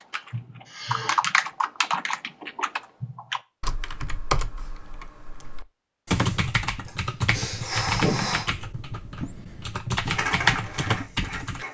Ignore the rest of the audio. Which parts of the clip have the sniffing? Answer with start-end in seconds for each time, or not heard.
0.1-1.2, 6.8-8.5.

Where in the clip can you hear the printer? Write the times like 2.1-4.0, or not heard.
10.1-11.6.